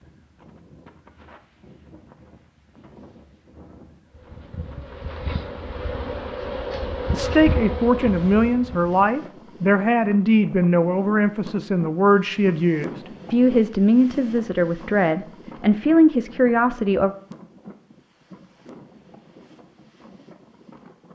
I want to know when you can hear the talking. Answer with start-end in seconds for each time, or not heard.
7.1-17.1.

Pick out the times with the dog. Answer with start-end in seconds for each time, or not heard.
not heard.